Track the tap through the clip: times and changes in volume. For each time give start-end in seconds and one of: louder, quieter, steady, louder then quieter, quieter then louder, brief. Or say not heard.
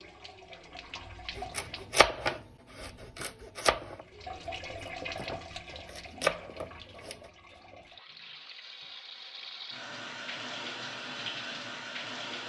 0.0-2.0 brief
4.0-12.4 quieter then louder.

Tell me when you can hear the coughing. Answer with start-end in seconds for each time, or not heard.
not heard.